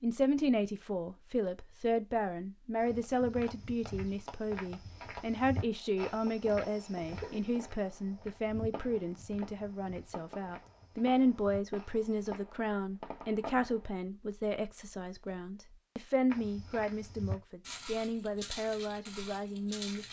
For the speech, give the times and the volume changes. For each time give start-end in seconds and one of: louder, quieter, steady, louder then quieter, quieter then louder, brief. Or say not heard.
0.0-20.0 steady.